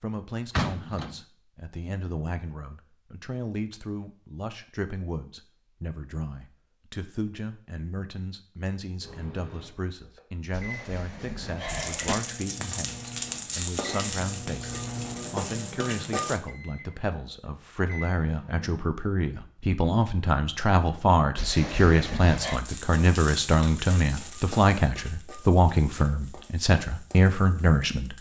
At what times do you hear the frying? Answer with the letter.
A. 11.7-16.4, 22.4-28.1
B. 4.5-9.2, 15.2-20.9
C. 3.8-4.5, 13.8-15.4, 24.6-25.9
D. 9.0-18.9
A.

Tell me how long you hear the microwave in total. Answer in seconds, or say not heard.
10 s.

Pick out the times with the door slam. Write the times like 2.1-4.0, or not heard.
0.5-1.2, 10.5-12.2, 21.4-22.6.